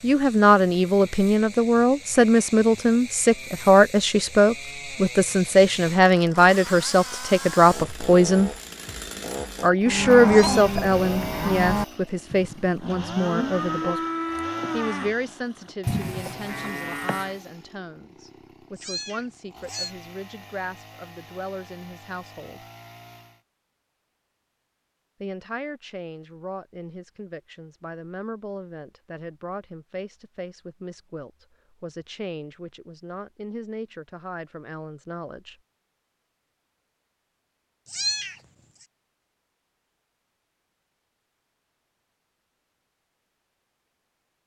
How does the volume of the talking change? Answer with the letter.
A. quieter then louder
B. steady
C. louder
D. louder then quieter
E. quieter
E.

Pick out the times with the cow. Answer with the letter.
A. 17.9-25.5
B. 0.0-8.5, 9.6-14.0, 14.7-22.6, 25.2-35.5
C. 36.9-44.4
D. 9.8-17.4
D.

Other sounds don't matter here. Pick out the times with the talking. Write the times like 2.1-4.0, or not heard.
0.0-8.5, 9.6-14.0, 14.7-22.6, 25.2-35.5.